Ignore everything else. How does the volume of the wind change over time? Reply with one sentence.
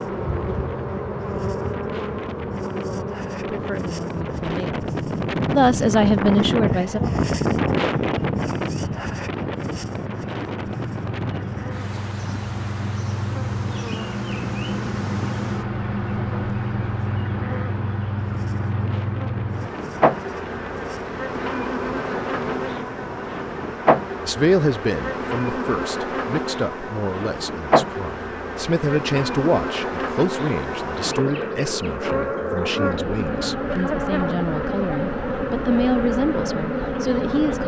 The loudness of the wind goes up, then down.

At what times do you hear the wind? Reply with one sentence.
The wind can be heard from 0.0 to 23.9 s.